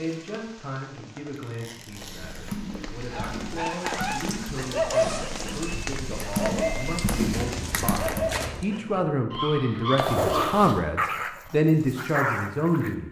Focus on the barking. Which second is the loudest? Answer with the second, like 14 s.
5 s.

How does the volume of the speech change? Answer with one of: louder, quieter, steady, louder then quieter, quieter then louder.
louder.